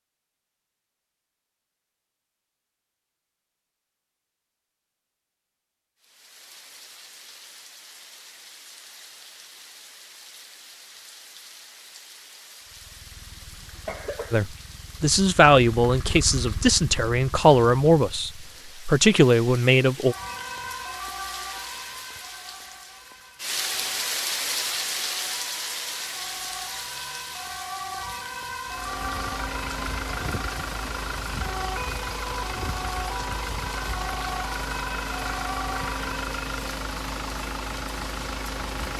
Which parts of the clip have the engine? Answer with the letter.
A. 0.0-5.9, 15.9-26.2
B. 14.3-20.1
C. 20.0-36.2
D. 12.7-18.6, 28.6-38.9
D.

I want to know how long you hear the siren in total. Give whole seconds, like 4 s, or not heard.
16 s.